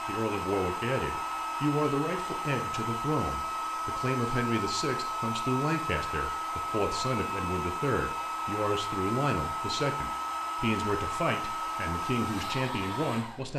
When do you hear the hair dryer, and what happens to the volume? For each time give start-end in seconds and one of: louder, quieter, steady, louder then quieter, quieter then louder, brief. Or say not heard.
0.0-13.5 steady.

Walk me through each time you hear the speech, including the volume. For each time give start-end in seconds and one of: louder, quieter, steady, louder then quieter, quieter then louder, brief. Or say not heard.
0.1-13.5 steady.